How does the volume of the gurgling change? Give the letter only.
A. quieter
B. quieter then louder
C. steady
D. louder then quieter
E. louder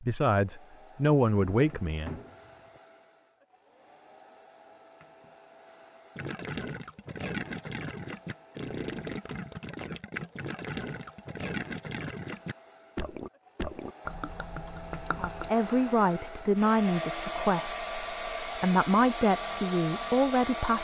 C.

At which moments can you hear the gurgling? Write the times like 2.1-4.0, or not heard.
6.2-15.5.